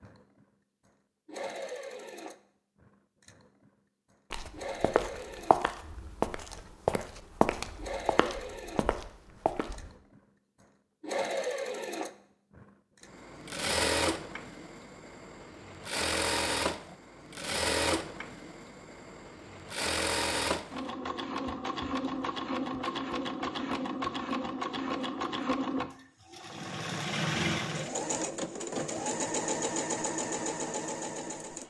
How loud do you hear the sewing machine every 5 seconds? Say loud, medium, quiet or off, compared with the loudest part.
medium, medium, loud, loud, loud, loud, loud.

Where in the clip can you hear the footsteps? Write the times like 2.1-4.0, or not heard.
4.3-9.9.